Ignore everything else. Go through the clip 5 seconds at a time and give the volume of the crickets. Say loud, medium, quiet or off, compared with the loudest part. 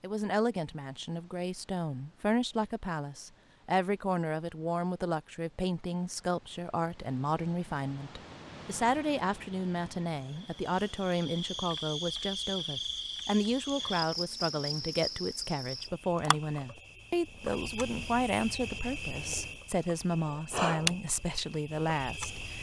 off, off, loud, medium, loud.